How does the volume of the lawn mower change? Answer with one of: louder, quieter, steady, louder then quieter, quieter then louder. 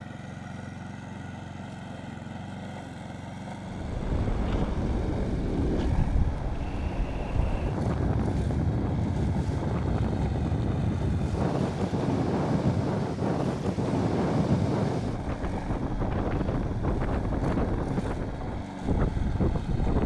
steady.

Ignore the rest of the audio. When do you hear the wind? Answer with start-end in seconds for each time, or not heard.
3.6-20.0.